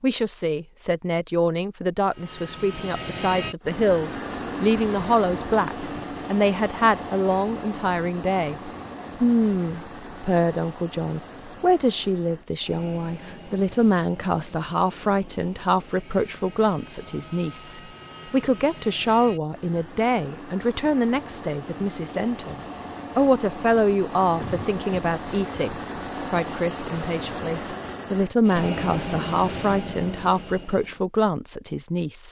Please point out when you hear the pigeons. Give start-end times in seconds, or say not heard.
not heard.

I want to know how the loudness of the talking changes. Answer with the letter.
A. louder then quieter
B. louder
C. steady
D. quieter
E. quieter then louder
C.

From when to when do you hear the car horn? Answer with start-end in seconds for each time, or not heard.
not heard.